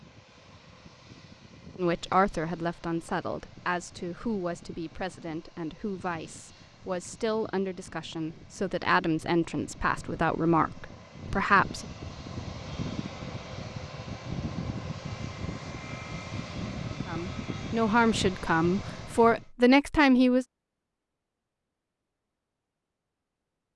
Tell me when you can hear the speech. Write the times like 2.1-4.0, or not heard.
1.8-11.8, 17.1-20.4.